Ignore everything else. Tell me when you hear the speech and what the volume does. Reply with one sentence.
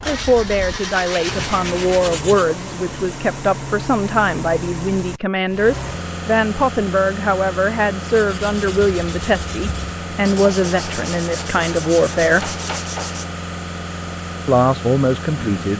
The speech can be heard from 0.0 to 12.6 s, at a steady volume; and briefly from 14.4 to 15.7 s.